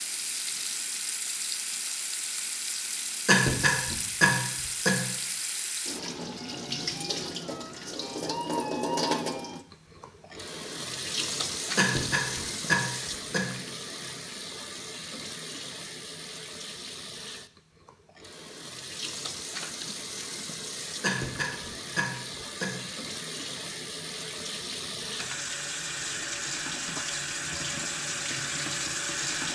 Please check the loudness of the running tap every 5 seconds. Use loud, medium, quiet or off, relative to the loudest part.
loud, loud, loud, medium, medium, loud.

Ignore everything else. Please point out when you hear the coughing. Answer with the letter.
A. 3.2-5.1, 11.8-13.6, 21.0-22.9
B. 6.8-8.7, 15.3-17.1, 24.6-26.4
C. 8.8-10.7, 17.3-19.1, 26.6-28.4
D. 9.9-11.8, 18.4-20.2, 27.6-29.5
A.